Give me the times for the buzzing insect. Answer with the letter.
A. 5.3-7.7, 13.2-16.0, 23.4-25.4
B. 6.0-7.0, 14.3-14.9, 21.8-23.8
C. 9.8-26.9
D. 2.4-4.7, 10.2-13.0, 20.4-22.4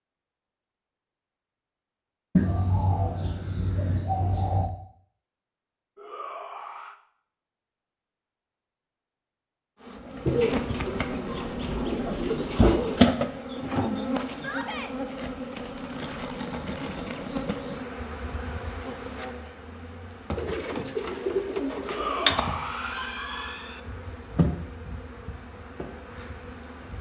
C.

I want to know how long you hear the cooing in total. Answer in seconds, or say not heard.
7 s.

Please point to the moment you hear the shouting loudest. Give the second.
22 s.